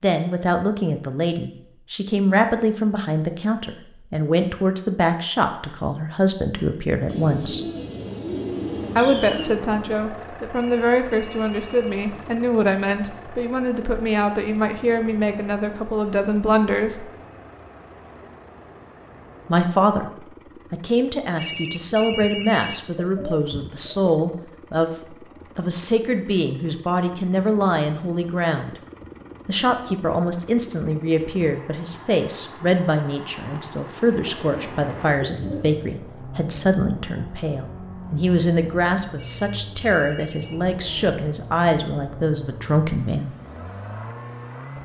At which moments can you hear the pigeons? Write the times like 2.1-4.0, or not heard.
7.0-9.6, 22.1-24.1, 34.2-35.8.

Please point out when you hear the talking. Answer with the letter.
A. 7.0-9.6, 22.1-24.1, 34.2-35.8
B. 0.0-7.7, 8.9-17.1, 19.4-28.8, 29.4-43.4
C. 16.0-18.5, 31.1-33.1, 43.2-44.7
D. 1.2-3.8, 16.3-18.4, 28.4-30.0
B.